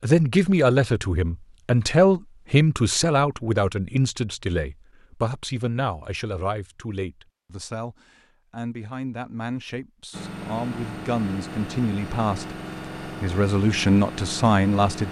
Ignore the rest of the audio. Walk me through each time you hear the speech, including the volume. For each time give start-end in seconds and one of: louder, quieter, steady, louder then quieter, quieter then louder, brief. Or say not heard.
0.0-15.0 quieter then louder.